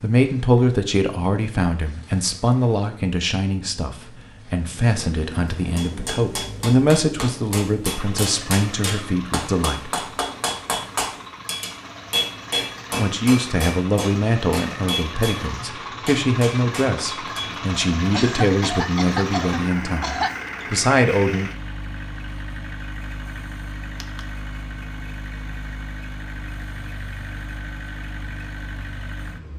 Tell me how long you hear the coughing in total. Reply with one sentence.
You can hear the coughing for 2 seconds altogether.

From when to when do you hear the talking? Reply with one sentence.
The talking can be heard from 0.0 to 9.9 s and from 12.9 to 21.5 s.